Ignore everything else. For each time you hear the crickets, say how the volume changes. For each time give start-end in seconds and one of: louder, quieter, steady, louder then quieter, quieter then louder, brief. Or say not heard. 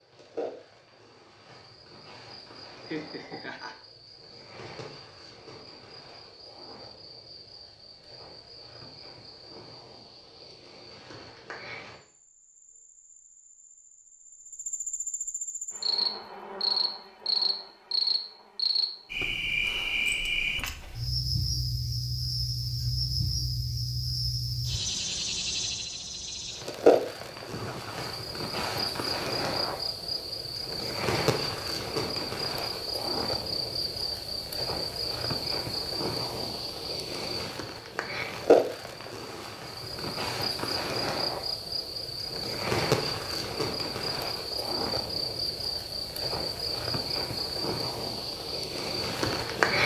0.0-49.8 louder.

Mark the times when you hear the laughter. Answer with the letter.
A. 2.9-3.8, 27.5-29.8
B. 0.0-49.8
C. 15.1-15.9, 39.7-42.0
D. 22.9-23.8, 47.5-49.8
A.